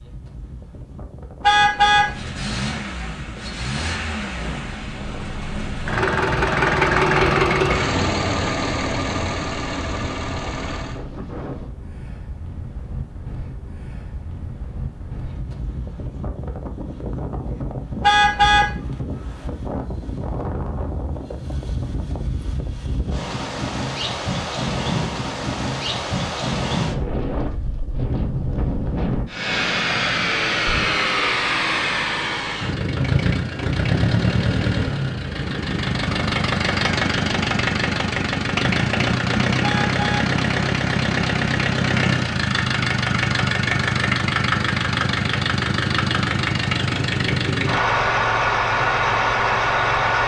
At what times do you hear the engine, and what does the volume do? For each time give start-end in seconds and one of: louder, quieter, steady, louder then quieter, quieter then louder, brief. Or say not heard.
1.9-11.0 louder then quieter
29.2-50.2 steady.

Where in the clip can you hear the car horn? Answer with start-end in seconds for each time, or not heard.
1.4-2.1, 18.0-18.7, 39.6-40.3.